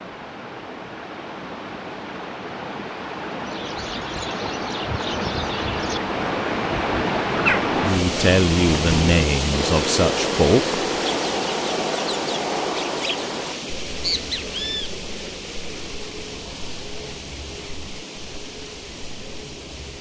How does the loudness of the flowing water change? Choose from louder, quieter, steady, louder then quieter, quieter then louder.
louder then quieter.